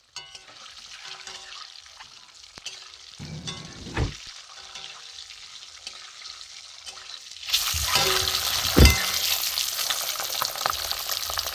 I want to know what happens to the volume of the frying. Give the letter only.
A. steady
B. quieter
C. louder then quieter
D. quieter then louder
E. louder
E.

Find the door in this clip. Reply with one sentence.
You can hear the door from 3.2 to 4.2 s and from 7.7 to 8.9 s.